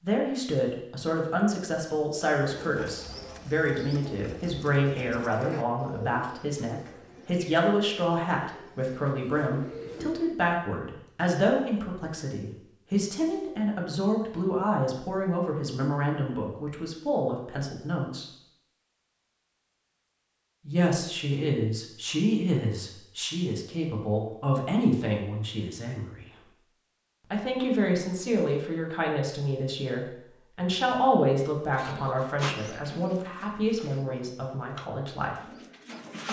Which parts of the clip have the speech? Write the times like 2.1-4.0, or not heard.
0.0-18.3, 20.6-26.5, 27.3-35.4.